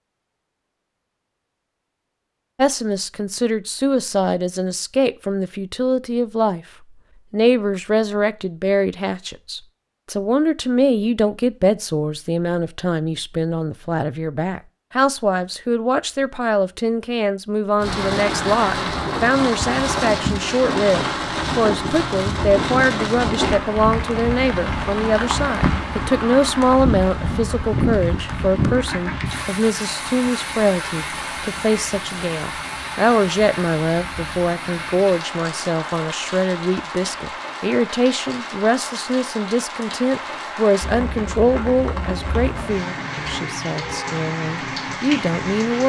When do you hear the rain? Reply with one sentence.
The rain can be heard from 17.8 to 45.8 s.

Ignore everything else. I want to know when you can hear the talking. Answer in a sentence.
The talking can be heard from 2.5 to 6.6 s and from 7.3 to 45.8 s.